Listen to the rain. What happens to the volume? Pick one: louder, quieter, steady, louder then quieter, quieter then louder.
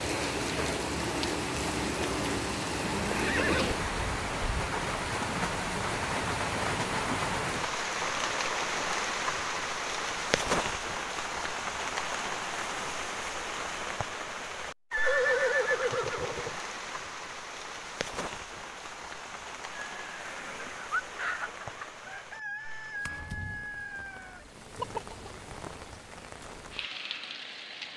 quieter.